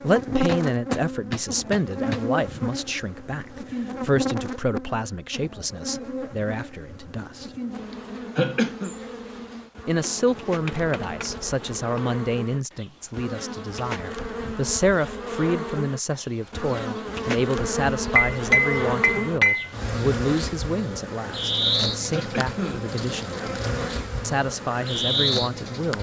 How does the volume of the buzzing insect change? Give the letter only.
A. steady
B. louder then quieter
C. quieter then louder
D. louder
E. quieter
C.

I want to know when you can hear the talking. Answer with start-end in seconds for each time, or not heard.
0.0-7.5, 9.8-25.9.